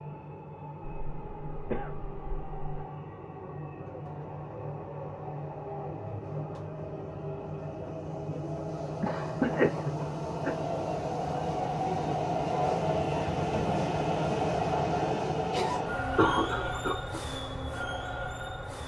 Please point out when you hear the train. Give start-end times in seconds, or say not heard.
0.0-18.8.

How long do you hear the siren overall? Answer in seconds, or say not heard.
not heard.